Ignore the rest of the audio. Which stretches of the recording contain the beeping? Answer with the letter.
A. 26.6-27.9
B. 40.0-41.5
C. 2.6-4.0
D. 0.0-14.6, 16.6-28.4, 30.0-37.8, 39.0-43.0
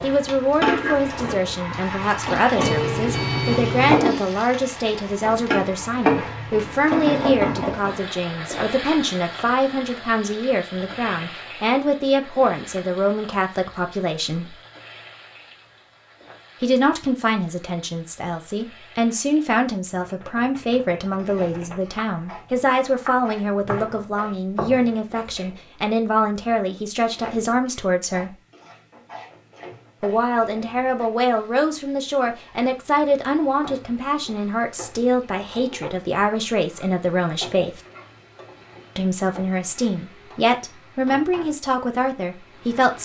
C.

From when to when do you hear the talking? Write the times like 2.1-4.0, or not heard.
0.0-14.6, 16.6-28.4, 30.0-37.8, 39.0-43.0.